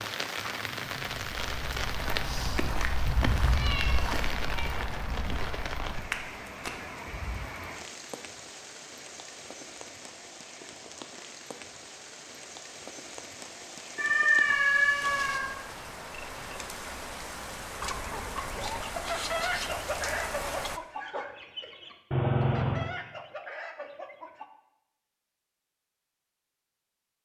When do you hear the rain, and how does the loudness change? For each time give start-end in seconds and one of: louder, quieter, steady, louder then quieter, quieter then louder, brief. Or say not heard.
0.0-20.8 quieter then louder.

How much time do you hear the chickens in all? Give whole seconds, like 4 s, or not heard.
7 s.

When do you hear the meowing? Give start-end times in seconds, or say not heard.
3.0-5.3, 13.9-15.4, 22.1-22.9.